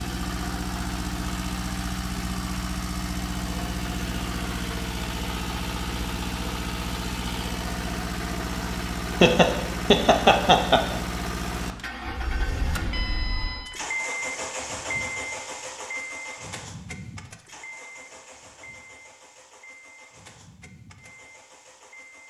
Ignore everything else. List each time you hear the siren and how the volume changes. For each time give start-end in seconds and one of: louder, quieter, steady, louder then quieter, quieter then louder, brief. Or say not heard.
not heard.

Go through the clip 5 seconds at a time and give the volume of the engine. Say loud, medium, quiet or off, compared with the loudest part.
loud, loud, loud, medium, quiet.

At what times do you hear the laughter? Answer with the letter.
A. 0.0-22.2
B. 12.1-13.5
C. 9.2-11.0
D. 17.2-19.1
C.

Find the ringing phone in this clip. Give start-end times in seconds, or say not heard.
12.1-13.5.